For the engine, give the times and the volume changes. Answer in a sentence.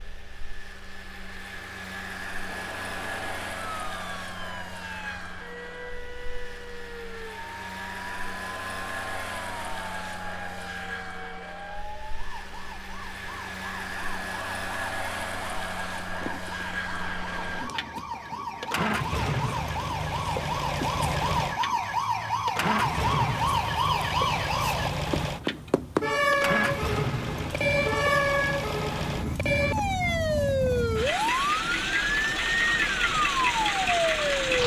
You can hear the engine from 0.0 to 34.6 s, getting louder.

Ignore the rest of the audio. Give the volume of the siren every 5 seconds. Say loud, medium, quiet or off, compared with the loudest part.
quiet, quiet, quiet, medium, loud, loud, loud.